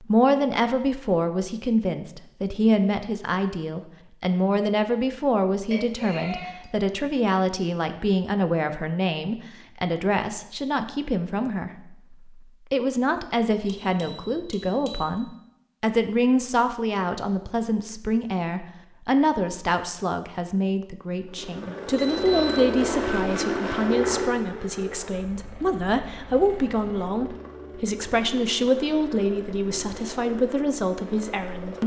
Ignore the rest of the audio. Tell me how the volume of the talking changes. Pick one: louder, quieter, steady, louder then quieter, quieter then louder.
steady.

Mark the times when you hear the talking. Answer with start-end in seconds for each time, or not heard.
0.0-31.8.